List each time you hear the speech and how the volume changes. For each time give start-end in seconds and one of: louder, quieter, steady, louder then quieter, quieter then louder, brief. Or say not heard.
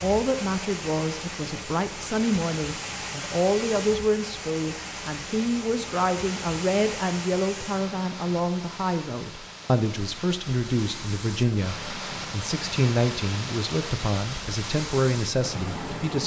0.0-16.2 steady.